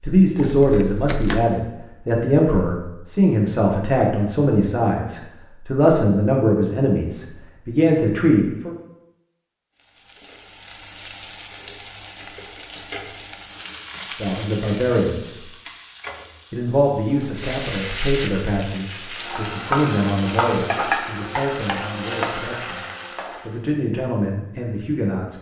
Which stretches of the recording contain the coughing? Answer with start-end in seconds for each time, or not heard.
not heard.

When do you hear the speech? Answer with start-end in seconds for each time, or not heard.
0.0-8.8, 14.1-15.4, 16.5-22.9, 23.4-25.3.